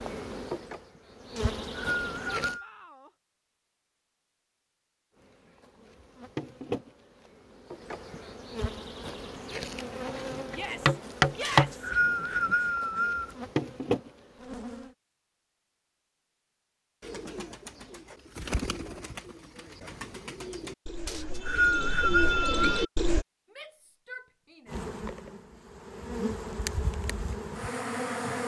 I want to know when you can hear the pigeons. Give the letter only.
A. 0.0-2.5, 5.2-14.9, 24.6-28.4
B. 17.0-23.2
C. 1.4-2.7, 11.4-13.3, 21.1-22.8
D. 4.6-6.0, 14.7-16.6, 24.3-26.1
B.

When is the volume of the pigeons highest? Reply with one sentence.
The loudest moment of the pigeons is at 23 seconds.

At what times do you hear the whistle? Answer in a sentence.
The whistle can be heard from 1.4 to 2.7 s, from 11.4 to 13.3 s and from 21.1 to 22.8 s.